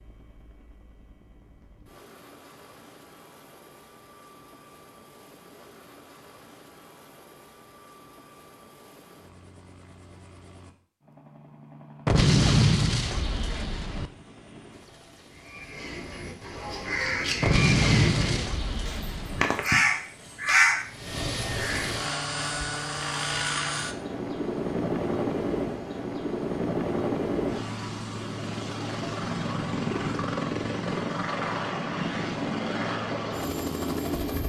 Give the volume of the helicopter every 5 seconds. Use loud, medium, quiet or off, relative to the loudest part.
quiet, quiet, quiet, quiet, loud, loud, loud.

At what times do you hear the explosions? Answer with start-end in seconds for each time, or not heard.
12.1-14.1, 17.4-19.4.